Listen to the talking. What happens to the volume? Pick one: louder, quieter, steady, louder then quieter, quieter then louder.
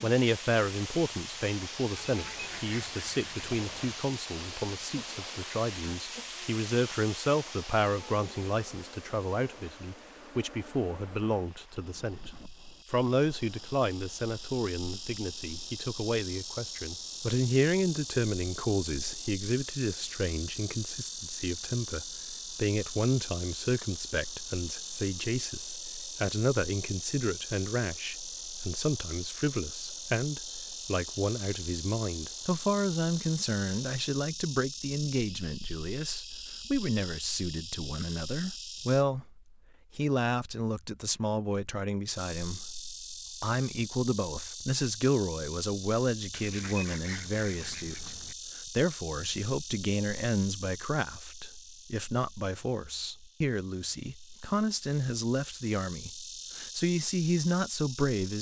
steady.